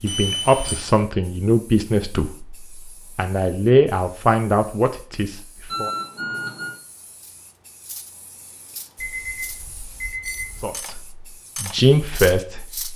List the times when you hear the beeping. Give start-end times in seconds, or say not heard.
0.1-0.9, 5.7-6.8, 8.9-10.7.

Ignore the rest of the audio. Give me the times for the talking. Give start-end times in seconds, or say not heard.
0.0-2.5, 3.1-5.9, 10.6-11.0, 11.6-12.8.